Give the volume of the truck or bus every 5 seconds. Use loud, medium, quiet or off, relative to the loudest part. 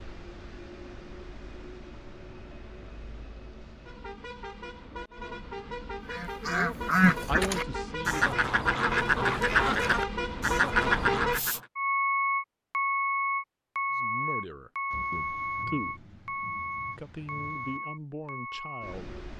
quiet, medium, loud, medium.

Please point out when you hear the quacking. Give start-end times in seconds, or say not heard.
6.1-11.6.